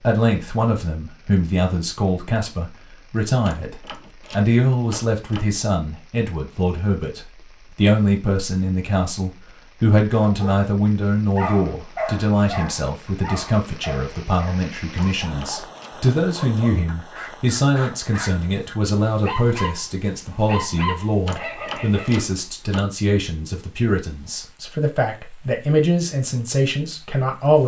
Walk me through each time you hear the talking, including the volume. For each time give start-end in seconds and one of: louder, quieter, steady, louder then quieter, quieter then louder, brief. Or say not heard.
0.0-27.6 steady.